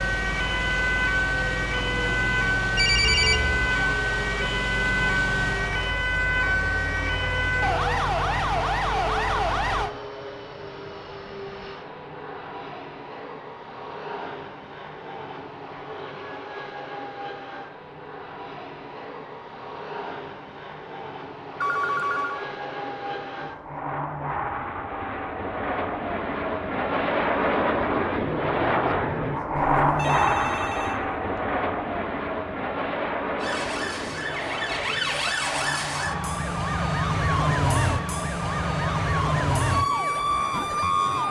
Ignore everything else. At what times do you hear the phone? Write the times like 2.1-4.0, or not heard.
2.8-3.5, 21.6-22.4, 29.6-31.1.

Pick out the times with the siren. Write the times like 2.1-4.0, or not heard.
0.0-9.9, 33.4-41.2.